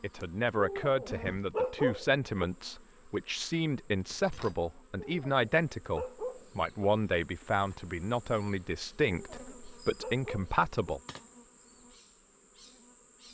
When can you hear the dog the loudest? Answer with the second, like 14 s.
2 s.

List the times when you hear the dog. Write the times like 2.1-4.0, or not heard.
0.6-2.5, 5.0-6.8, 9.1-10.9.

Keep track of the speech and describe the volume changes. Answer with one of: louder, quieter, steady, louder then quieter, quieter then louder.
steady.